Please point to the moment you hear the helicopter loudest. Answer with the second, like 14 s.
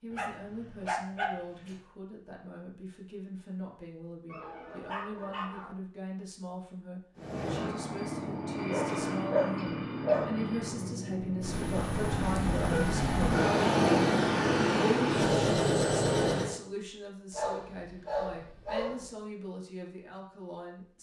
14 s.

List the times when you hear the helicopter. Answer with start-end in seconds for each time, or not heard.
7.2-16.6.